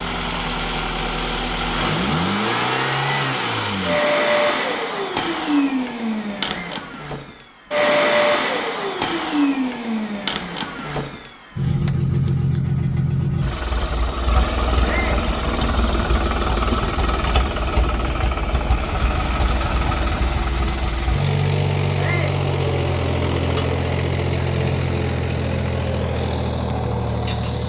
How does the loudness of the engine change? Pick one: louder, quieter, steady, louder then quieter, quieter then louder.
steady.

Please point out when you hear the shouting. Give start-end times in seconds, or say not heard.
6.5-6.9, 14.8-15.2, 21.9-22.4.